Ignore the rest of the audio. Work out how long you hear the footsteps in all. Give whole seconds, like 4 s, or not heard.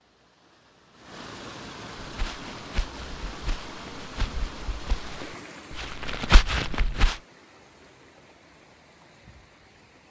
5 s.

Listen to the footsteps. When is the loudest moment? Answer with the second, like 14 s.
6 s.